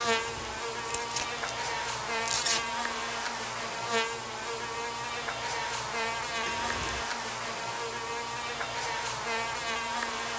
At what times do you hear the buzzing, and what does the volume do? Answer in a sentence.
The buzzing can be heard from 0.0 to 10.3 s, at a steady volume.